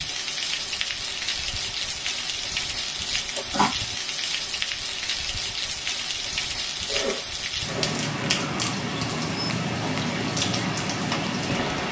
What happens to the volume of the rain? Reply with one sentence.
The loudness of the rain stays about the same.